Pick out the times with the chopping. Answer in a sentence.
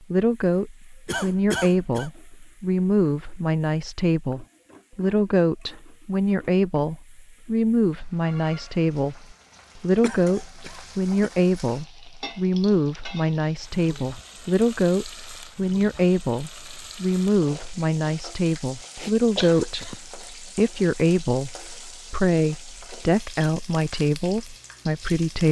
You can't hear the chopping here.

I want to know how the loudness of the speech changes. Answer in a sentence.
The volume of the speech stays about the same.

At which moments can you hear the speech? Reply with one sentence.
The speech can be heard from 0.1 to 25.4 s.